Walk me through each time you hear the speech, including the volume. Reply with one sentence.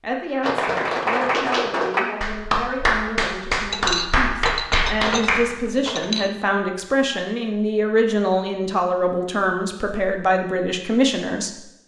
The speech can be heard from 0.0 to 11.6 s, getting louder.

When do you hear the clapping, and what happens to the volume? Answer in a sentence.
You can hear the clapping from 0.4 to 5.5 s, at a steady volume.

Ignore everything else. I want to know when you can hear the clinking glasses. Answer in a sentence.
The clinking glasses can be heard from 3.7 to 6.3 s.